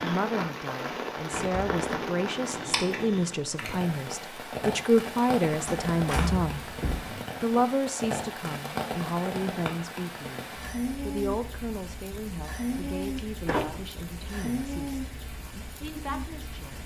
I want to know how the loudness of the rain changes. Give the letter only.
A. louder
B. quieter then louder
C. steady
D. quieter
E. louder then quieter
C.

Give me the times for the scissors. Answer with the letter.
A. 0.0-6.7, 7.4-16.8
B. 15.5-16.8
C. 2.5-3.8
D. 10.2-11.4
C.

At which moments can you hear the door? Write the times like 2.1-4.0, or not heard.
1.2-3.1, 5.7-7.1, 13.2-14.5.